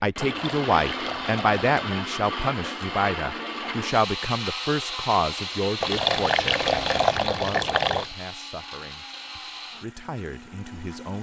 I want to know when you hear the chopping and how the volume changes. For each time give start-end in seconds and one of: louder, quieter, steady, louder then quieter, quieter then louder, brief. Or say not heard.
not heard.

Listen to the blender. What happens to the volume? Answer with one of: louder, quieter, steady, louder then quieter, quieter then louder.
quieter.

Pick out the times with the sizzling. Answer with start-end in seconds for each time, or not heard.
not heard.